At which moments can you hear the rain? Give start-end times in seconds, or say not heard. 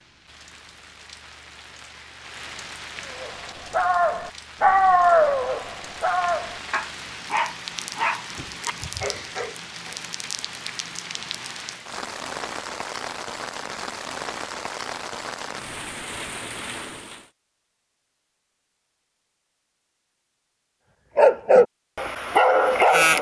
0.0-17.3.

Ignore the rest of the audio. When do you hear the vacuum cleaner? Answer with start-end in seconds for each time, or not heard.
not heard.